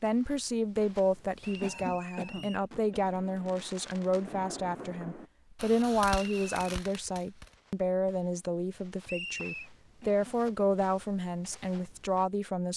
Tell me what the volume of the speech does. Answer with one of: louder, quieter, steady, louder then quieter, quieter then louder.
steady.